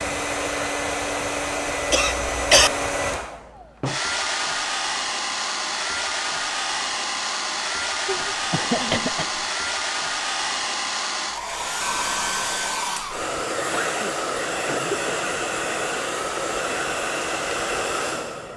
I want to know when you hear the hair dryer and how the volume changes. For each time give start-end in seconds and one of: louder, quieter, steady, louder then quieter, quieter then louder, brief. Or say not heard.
0.0-18.5 steady.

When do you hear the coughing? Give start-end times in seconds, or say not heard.
1.9-2.7, 8.1-9.2, 13.6-15.2.